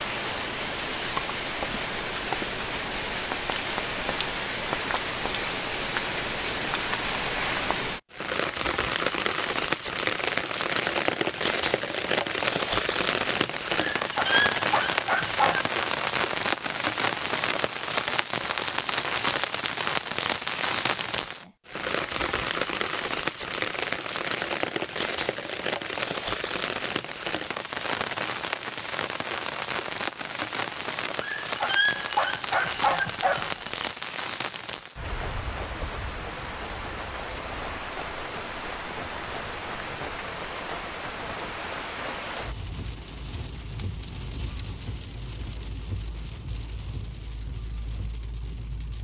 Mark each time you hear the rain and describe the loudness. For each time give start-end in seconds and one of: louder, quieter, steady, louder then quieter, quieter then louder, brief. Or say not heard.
0.0-48.9 quieter.